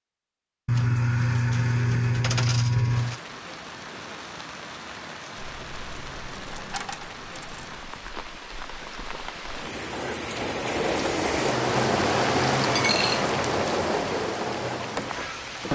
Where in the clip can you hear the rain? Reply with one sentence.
You can hear the rain from 2.9 to 15.7 s.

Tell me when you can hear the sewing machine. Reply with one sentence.
You can hear the sewing machine from 9.9 to 15.7 s.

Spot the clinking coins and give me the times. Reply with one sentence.
The clinking coins can be heard from 0.7 to 3.2 s, from 5.5 to 7.8 s and from 12.8 to 13.3 s.